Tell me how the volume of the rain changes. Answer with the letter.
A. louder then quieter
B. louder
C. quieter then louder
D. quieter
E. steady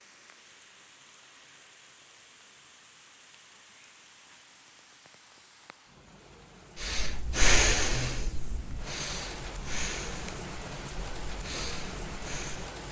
B.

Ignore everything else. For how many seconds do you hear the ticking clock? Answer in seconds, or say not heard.
not heard.